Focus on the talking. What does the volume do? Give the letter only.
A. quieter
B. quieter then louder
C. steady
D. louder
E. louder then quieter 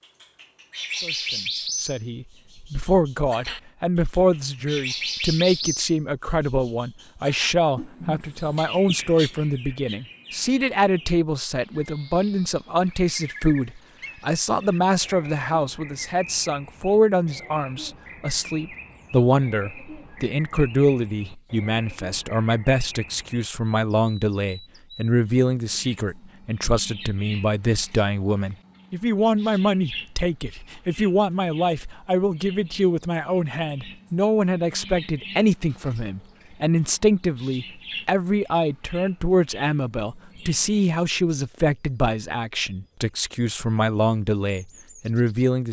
C.